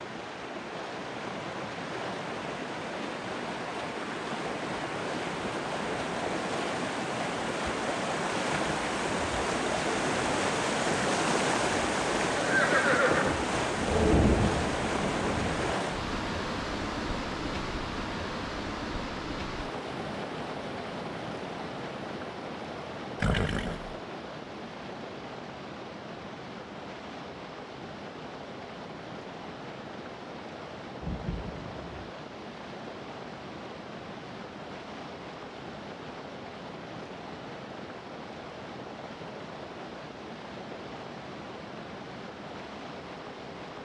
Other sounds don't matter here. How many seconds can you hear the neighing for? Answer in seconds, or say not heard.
2 s.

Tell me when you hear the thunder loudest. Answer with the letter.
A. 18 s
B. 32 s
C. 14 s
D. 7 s
C.